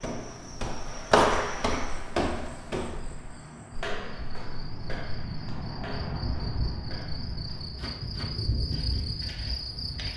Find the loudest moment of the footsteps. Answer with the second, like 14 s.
1 s.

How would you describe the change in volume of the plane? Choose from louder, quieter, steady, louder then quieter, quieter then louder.
louder then quieter.